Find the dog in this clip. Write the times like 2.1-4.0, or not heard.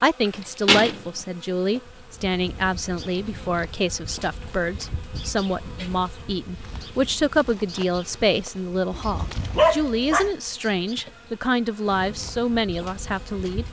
8.9-10.3.